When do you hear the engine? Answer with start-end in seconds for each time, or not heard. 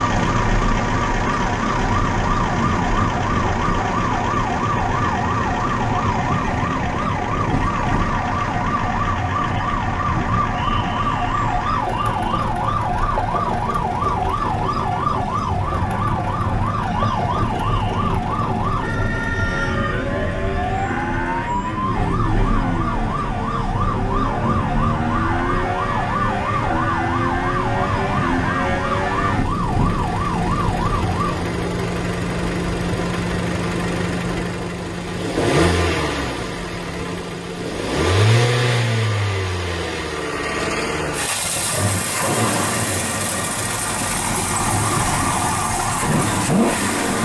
0.0-47.2.